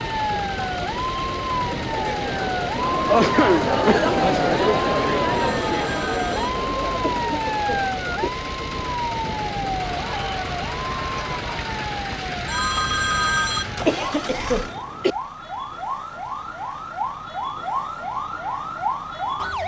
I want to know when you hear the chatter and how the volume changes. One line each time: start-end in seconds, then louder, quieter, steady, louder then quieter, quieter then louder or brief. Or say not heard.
0.0-14.3 louder then quieter.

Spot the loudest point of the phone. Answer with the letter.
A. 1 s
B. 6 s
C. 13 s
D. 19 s
C.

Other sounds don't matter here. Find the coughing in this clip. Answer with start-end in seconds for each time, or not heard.
3.0-4.1, 7.0-8.3, 13.8-15.2.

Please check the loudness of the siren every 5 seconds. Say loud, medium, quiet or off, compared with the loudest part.
loud, loud, medium, loud.